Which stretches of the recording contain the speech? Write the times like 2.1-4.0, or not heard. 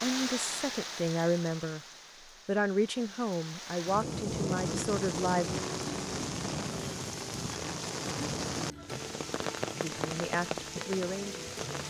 0.0-1.8, 2.5-5.5, 9.8-11.8.